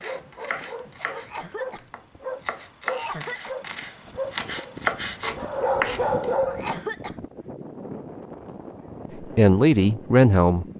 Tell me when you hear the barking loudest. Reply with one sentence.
The volume of the barking peaks at 6 seconds.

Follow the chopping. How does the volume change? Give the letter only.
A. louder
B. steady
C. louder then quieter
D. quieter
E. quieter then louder
A.